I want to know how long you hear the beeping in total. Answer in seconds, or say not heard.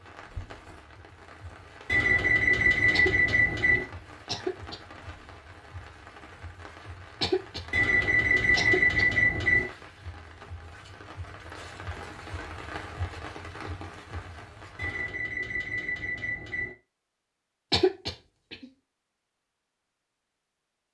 6 s.